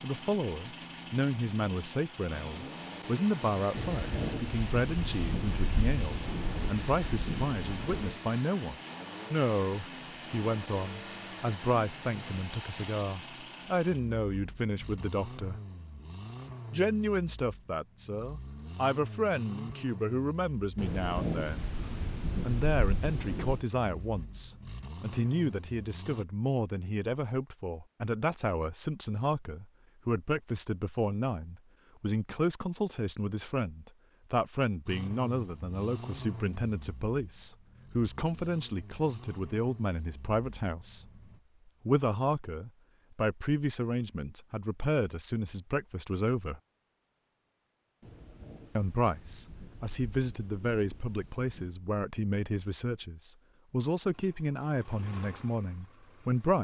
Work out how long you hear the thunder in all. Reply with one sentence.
The thunder can be heard for 11 seconds in total.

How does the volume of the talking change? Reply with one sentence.
The loudness of the talking stays about the same.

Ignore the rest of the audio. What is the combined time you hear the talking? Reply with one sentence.
The talking can be heard for 52 seconds in total.